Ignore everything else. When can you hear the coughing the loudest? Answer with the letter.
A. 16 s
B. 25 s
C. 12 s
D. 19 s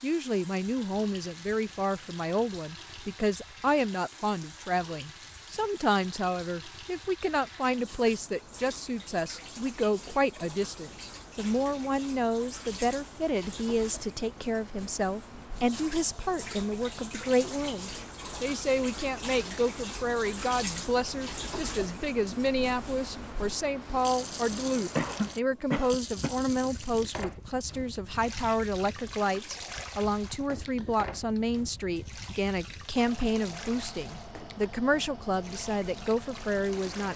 B.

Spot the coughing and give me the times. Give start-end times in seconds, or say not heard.
24.9-26.8.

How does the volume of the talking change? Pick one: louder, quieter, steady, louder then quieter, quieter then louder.
steady.